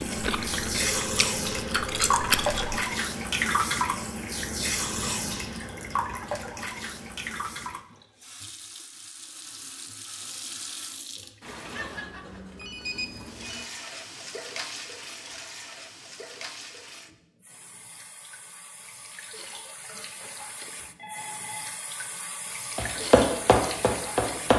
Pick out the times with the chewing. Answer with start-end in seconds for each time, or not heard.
0.0-2.9.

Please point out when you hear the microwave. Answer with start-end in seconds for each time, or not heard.
not heard.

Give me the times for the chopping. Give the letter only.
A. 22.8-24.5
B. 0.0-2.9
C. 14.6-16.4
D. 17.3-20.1
A.